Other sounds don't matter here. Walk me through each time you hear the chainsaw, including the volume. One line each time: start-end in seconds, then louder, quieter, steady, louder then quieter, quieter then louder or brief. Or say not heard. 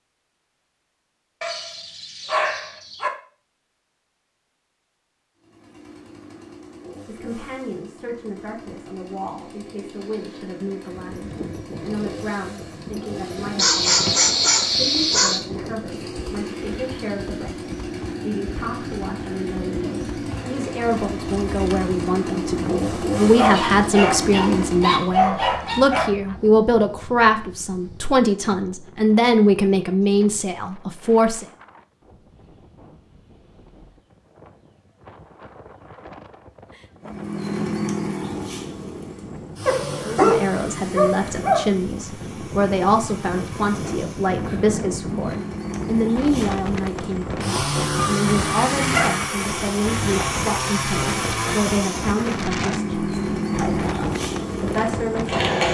5.3-25.1 louder
37.0-55.6 quieter then louder.